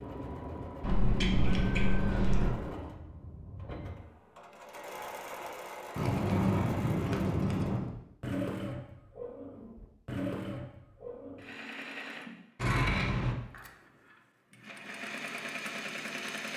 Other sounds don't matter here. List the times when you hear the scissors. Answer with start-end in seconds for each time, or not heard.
0.8-2.5, 6.0-7.8, 12.6-13.3.